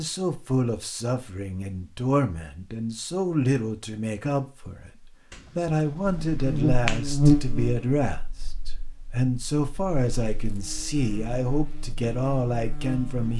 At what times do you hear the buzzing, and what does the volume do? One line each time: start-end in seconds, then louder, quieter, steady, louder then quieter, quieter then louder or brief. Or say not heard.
6.3-13.3 quieter then louder.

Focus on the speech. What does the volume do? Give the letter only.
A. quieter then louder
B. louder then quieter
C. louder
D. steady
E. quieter
D.